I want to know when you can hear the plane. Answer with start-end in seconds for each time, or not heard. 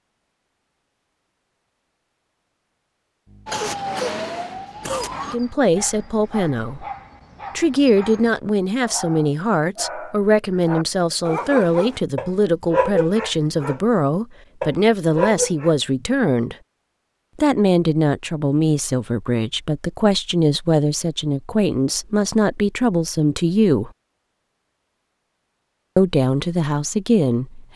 not heard.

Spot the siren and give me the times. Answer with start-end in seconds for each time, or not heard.
3.5-5.4.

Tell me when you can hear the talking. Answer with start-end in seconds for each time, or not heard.
5.3-6.8, 7.5-16.6, 17.4-23.9, 25.9-27.7.